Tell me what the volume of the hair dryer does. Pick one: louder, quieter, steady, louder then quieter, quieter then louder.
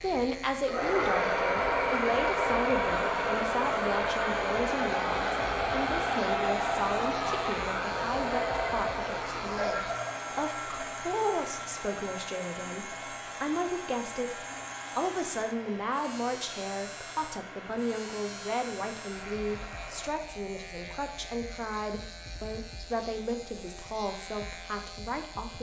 quieter.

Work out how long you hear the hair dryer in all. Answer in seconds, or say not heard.
20 s.